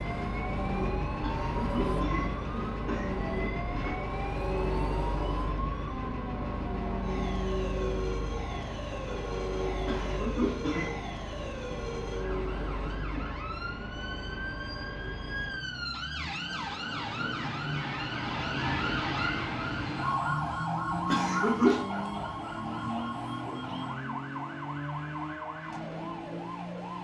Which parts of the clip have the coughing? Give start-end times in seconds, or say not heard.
1.2-4.0, 9.8-11.0, 21.1-21.9.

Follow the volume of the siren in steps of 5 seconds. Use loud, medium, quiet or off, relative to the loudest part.
medium, medium, medium, loud, loud, medium.